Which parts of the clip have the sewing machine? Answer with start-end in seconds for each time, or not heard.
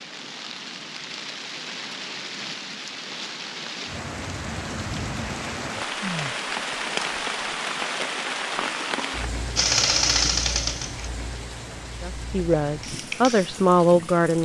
9.6-11.1.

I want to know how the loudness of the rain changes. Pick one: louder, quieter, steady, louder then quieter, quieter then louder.
louder then quieter.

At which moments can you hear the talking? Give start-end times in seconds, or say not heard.
12.0-14.4.